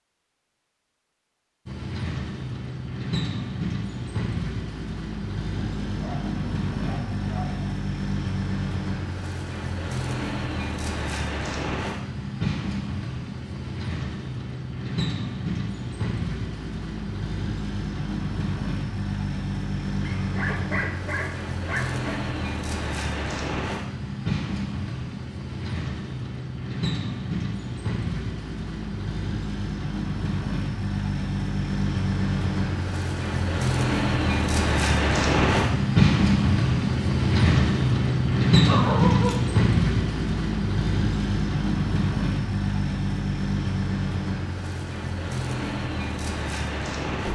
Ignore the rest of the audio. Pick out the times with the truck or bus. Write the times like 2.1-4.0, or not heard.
1.6-47.3.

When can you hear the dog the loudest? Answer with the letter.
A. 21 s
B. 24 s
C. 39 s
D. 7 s
C.